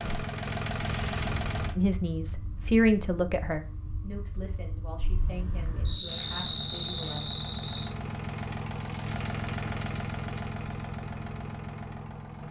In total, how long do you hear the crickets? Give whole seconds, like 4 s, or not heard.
8 s.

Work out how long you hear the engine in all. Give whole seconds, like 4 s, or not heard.
8 s.